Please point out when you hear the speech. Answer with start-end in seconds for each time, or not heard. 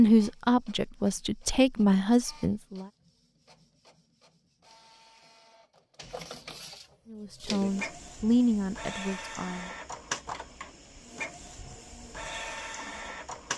0.0-2.9, 7.1-9.7.